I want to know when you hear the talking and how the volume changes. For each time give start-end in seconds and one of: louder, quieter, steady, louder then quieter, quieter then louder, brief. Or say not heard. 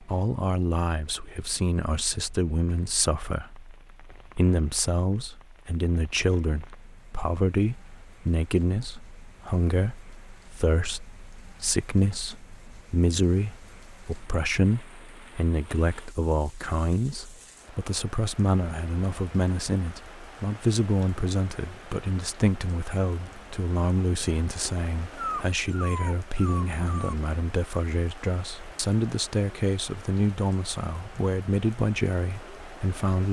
0.0-33.2 steady.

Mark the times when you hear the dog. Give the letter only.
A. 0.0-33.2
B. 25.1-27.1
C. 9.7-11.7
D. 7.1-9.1
B.